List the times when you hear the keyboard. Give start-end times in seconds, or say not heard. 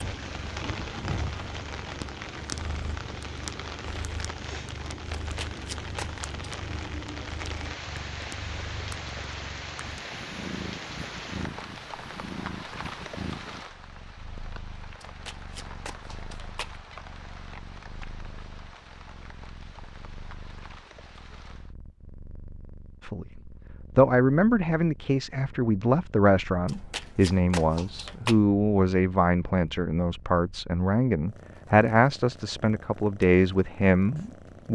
not heard.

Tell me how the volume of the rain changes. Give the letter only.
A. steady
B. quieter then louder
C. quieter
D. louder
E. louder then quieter
C.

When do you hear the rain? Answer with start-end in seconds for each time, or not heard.
0.0-21.8.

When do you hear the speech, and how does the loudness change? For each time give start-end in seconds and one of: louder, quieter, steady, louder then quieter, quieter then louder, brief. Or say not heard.
23.0-34.7 steady.